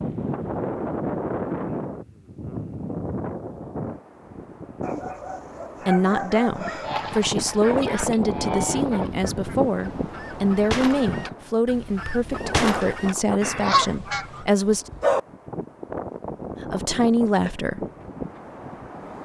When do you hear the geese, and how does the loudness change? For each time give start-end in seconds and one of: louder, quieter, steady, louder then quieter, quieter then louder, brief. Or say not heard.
6.8-14.4 louder.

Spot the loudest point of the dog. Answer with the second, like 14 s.
15 s.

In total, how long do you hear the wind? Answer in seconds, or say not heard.
19 s.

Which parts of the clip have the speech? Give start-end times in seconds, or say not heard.
5.8-14.8, 16.6-17.9.